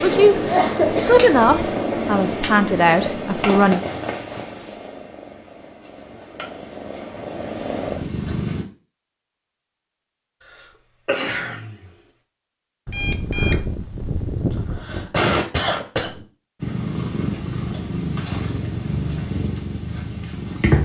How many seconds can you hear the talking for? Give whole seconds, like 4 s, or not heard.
4 s.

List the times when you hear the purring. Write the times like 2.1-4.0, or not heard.
0.0-8.7, 16.6-20.8.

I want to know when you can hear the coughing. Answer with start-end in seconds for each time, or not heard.
0.3-1.2, 11.1-11.8, 14.5-16.2.